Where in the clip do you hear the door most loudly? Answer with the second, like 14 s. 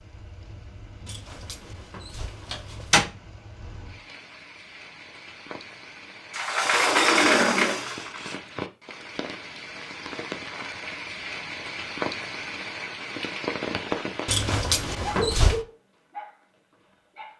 7 s.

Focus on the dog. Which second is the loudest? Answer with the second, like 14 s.
15 s.